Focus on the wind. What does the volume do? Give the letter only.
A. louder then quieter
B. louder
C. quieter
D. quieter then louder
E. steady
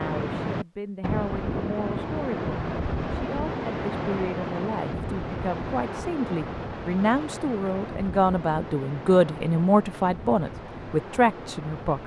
C.